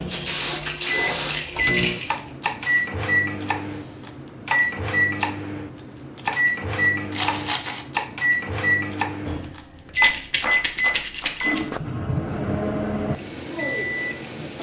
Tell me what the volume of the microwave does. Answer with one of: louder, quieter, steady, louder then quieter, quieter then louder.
steady.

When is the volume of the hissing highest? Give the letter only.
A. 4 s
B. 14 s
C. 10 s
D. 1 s
D.